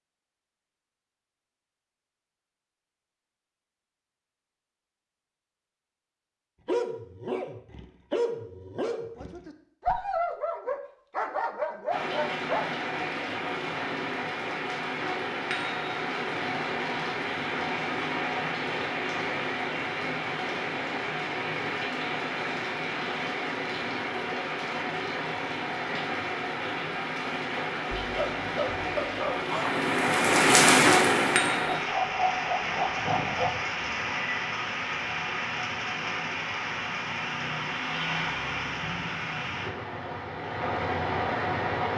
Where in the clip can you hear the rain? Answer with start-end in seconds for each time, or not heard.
11.9-41.9.